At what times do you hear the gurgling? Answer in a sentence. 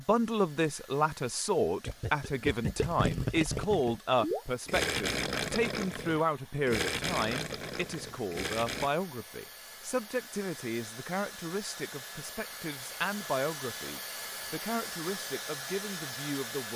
The gurgling can be heard from 1.9 to 8.9 s.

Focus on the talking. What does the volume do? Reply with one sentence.
The volume of the talking goes down.